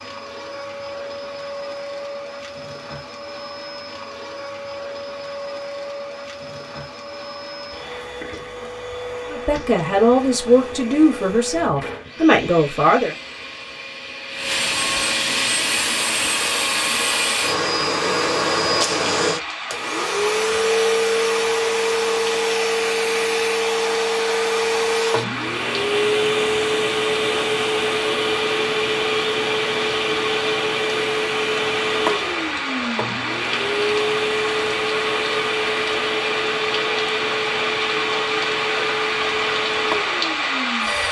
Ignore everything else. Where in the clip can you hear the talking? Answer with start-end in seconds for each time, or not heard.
9.3-13.2.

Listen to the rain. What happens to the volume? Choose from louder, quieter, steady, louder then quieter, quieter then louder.
louder.